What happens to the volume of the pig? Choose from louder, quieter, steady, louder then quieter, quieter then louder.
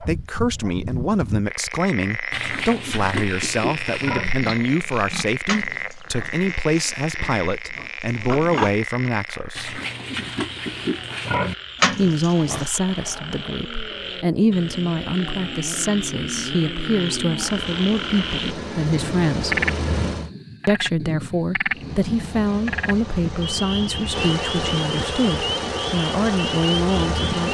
quieter then louder.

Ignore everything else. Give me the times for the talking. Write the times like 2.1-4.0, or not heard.
0.0-9.8, 11.9-19.6, 20.6-27.4.